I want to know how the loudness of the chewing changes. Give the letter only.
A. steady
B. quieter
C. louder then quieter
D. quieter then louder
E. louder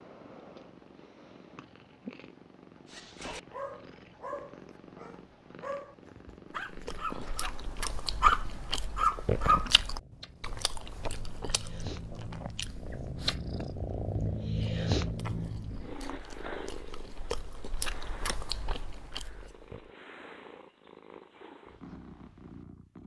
D.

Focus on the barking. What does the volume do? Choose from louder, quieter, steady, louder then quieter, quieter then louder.
quieter then louder.